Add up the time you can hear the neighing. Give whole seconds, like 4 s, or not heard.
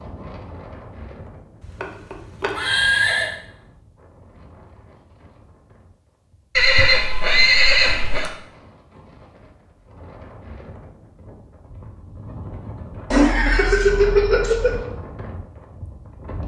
5 s.